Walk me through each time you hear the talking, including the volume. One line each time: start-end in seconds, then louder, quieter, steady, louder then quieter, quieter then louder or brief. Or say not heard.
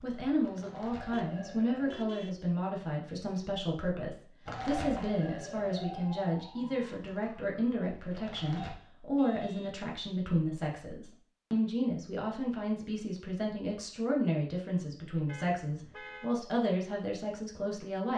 0.0-18.1 steady.